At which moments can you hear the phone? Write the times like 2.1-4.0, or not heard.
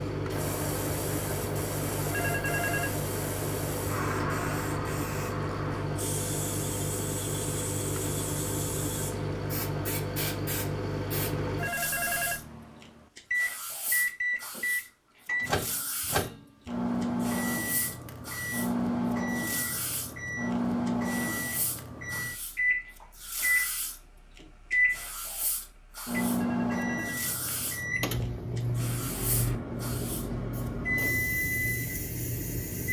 2.1-3.0, 11.6-12.4, 26.4-27.2.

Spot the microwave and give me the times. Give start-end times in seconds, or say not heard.
0.0-32.8.